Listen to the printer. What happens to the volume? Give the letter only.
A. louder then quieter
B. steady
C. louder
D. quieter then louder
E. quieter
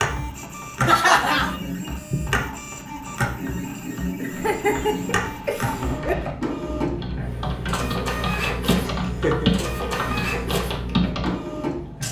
B.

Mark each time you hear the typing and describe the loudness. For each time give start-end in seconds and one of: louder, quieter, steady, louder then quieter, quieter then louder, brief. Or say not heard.
0.0-11.4 quieter then louder.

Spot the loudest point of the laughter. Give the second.
1 s.